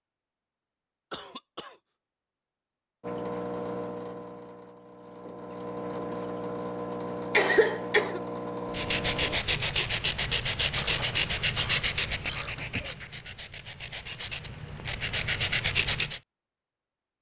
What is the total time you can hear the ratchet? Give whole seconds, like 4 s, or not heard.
2 s.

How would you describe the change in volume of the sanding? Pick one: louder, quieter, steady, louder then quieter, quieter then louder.
quieter then louder.